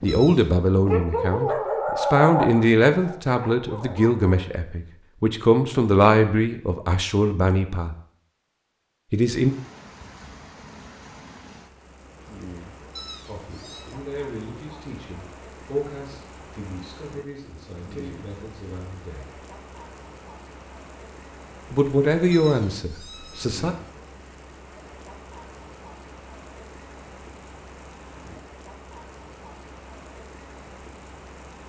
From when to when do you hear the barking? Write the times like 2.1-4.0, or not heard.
0.0-4.5.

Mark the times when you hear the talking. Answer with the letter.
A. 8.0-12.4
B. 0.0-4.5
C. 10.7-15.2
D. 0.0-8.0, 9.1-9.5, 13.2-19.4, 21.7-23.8
D.